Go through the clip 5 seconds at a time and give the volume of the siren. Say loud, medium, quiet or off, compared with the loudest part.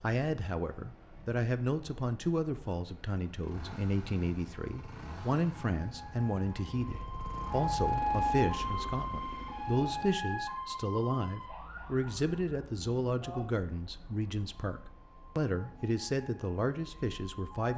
quiet, loud, medium, quiet.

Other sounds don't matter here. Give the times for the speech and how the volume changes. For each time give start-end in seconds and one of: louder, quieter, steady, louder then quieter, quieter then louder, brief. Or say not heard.
0.0-17.7 steady.